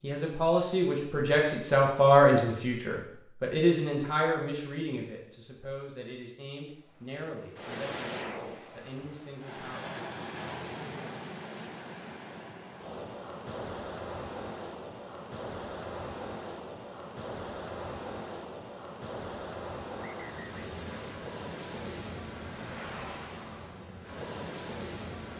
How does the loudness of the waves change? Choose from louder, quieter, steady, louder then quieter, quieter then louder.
steady.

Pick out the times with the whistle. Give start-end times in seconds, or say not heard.
19.9-20.7.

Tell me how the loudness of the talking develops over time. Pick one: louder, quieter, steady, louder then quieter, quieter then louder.
quieter.